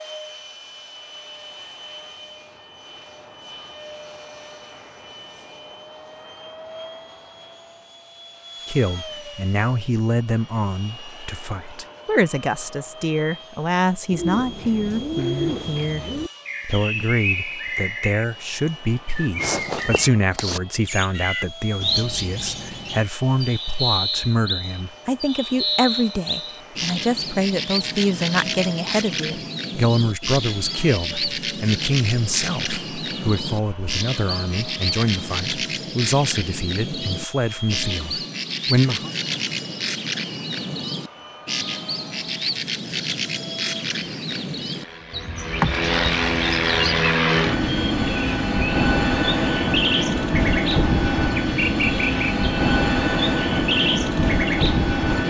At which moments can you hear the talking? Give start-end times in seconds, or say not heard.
8.7-39.1.